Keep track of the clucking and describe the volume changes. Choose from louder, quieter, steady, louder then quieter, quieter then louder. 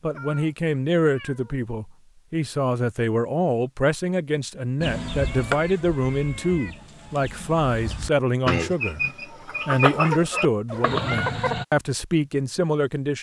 quieter then louder.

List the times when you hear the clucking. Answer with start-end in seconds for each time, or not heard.
4.8-11.7.